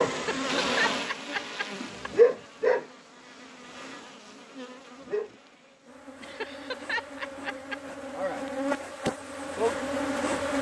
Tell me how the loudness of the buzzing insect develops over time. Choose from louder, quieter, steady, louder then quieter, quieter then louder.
quieter then louder.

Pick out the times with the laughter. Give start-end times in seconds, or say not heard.
0.1-2.1, 6.2-7.8.